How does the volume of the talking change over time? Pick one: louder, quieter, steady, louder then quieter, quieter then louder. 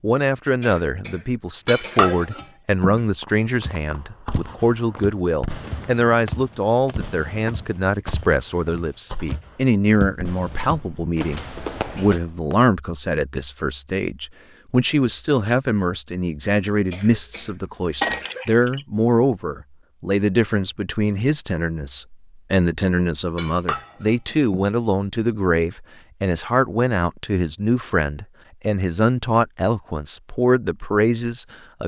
steady.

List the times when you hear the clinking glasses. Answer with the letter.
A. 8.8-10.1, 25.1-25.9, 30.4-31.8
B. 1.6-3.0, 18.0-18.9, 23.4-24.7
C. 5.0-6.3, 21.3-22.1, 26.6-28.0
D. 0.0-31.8
B.